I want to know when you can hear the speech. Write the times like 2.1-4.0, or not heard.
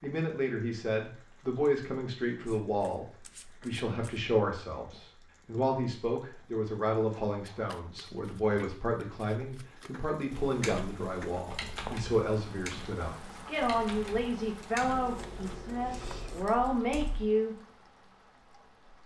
0.0-17.6.